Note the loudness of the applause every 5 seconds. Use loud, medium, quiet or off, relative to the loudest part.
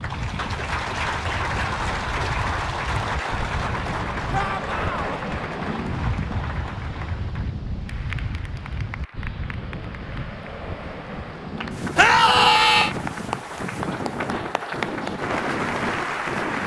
loud, medium, medium, loud.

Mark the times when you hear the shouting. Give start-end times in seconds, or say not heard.
4.3-5.2, 11.9-12.9.